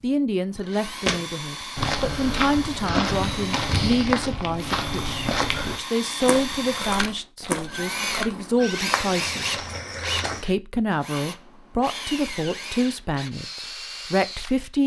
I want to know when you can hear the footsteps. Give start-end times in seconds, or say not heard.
1.1-10.4.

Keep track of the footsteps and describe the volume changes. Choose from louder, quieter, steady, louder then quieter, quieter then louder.
quieter.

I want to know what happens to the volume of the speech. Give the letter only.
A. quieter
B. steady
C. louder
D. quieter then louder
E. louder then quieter
B.